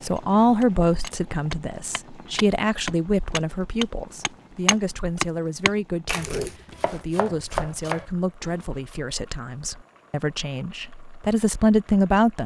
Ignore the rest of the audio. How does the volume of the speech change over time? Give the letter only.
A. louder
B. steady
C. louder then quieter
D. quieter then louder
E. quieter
D.